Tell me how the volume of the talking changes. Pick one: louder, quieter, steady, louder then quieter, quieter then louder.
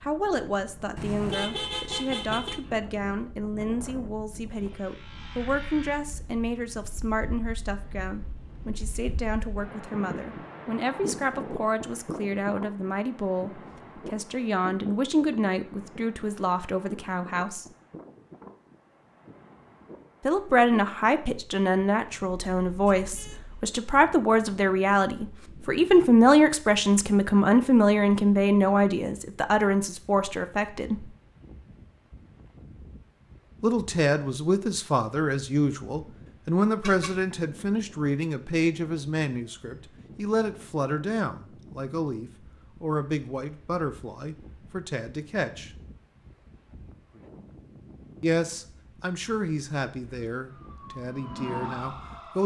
louder then quieter.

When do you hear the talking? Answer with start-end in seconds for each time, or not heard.
0.0-17.6, 20.2-31.1, 33.6-45.7, 48.2-52.4.